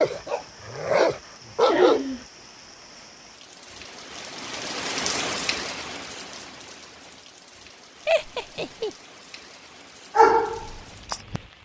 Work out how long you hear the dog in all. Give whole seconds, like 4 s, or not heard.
3 s.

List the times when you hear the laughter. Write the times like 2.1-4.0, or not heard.
1.6-2.2, 8.1-8.9.